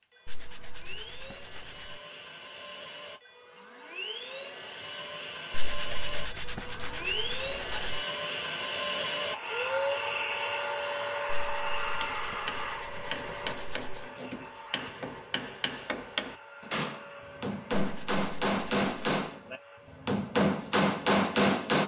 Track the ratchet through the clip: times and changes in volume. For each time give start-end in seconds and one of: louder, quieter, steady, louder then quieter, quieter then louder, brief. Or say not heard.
not heard.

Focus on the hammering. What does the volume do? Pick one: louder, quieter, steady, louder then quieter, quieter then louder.
louder.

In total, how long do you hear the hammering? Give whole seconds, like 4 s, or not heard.
10 s.